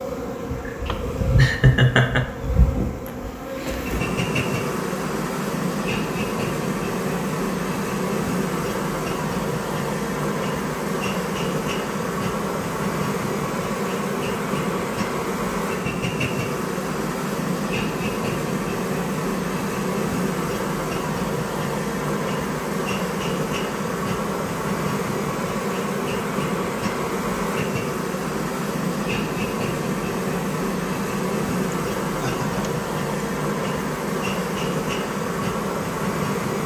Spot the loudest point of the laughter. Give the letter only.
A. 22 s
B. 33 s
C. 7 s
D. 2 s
D.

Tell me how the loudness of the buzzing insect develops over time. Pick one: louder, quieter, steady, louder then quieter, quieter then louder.
steady.